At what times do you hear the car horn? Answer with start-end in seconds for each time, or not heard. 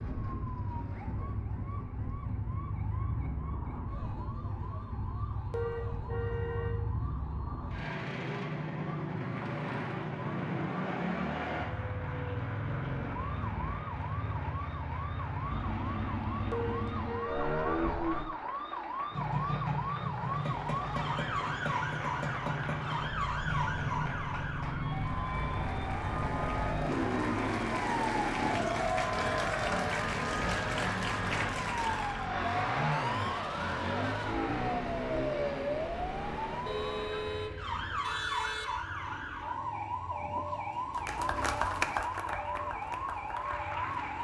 5.5-6.8, 16.5-17.9, 36.6-38.6.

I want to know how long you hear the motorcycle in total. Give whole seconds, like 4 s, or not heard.
44 s.